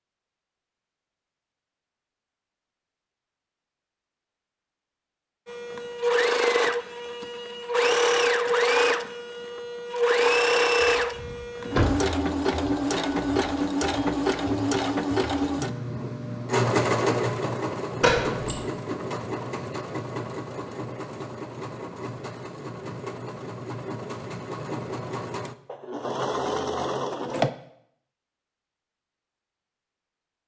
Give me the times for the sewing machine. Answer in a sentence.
You can hear the sewing machine from 5.5 to 27.5 s.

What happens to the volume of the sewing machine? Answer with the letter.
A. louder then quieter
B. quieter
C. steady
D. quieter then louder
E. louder
B.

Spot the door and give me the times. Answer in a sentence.
You can hear the door from 10.8 to 11.9 s and from 18.0 to 18.6 s.